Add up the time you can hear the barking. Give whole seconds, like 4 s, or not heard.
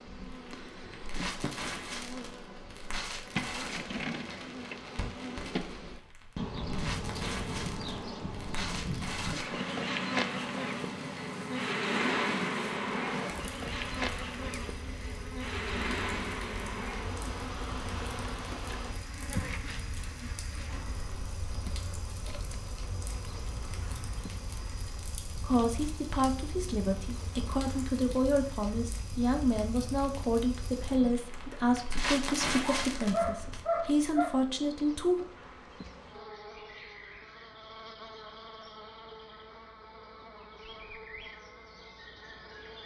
2 s.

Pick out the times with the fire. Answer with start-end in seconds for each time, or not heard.
0.1-33.6.